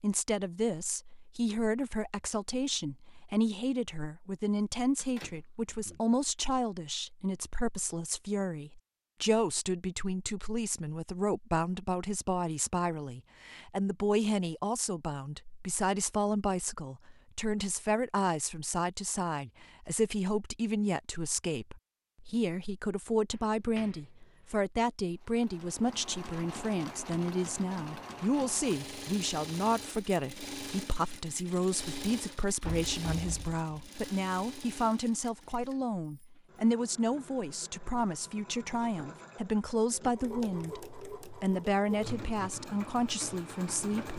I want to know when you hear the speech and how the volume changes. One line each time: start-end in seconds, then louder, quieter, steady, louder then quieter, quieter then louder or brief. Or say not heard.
0.0-44.1 steady.